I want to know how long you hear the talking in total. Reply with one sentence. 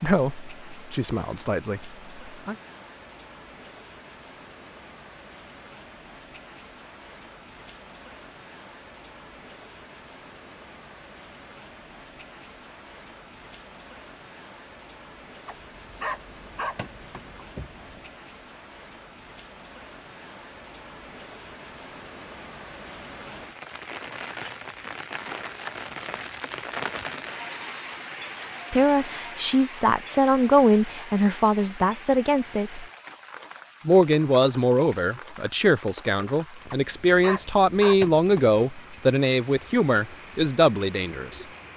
You can hear the talking for 14 seconds altogether.